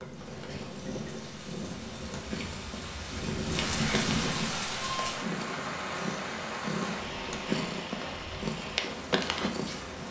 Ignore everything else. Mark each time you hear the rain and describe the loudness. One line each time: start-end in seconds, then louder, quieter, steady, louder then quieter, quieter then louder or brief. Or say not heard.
0.0-10.0 louder then quieter.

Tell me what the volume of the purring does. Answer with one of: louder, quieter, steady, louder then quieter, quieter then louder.
louder.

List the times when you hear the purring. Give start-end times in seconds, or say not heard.
0.0-10.0.